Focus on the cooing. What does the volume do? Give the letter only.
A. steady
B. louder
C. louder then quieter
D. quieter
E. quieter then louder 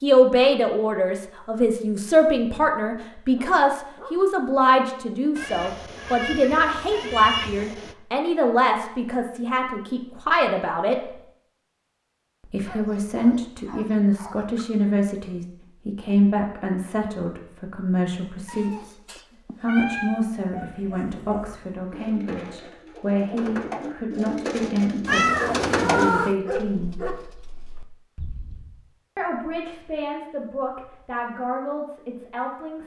C.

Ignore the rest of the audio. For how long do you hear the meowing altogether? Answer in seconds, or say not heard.
6 s.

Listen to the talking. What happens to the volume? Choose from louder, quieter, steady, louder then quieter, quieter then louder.
quieter.